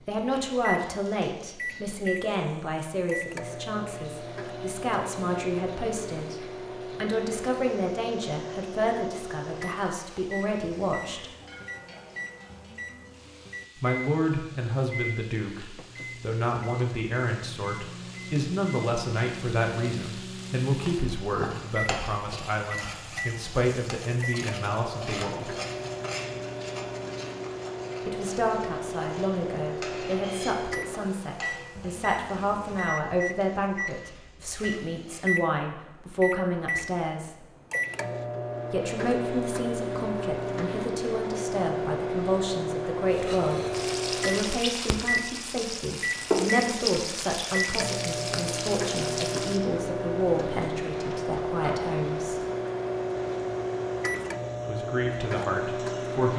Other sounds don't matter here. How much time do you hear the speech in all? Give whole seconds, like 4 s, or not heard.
48 s.